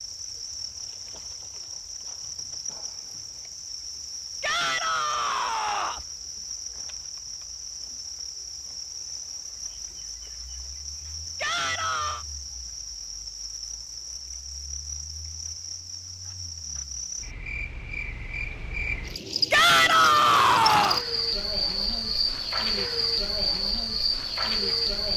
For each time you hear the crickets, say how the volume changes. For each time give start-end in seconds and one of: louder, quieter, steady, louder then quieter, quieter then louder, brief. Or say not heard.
0.0-25.1 louder.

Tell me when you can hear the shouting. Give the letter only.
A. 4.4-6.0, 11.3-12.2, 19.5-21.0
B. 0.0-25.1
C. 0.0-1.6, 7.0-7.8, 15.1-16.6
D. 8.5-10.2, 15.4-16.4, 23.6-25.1
A.